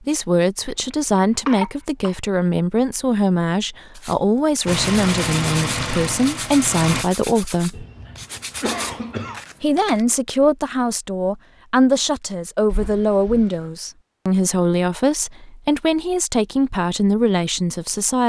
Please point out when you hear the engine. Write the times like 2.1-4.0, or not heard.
4.7-7.0.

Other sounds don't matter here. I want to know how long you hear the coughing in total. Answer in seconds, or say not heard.
4 s.